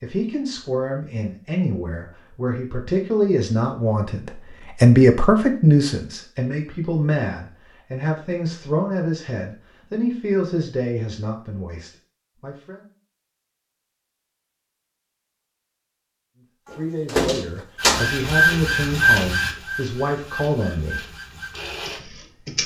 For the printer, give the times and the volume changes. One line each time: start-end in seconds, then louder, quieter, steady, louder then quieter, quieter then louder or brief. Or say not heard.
17.8-22.6 quieter.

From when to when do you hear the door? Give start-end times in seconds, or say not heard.
16.7-18.1.